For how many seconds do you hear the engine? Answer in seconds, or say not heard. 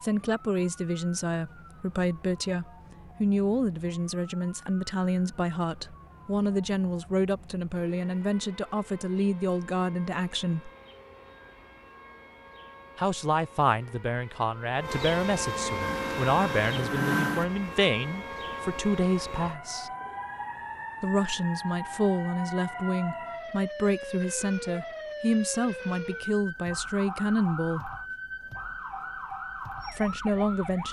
2 s.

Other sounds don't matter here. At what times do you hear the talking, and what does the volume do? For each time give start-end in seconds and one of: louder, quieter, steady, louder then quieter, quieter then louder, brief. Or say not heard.
0.0-10.7 steady
12.9-19.9 steady
21.0-27.9 steady
29.9-30.8 brief.